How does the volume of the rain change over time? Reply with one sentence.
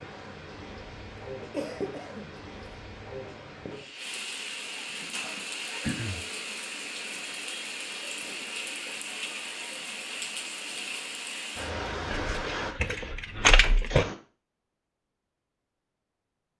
The volume of the rain goes up.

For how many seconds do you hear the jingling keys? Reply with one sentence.
The jingling keys can be heard for 2 seconds in total.